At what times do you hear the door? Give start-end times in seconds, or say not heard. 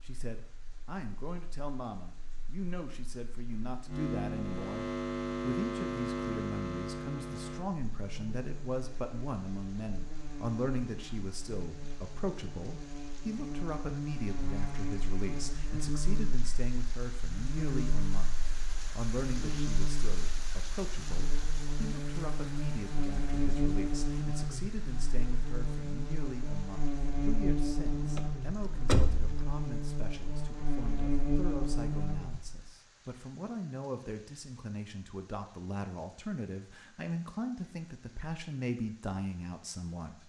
28.1-29.6.